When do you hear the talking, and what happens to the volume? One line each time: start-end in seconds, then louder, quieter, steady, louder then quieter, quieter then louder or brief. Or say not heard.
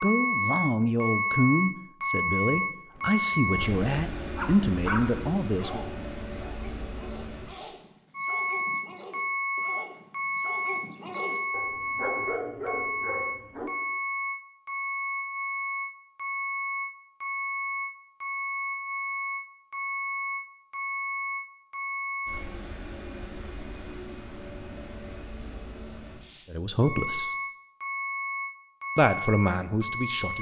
0.0-5.8 steady
26.5-27.3 brief
28.9-30.3 brief.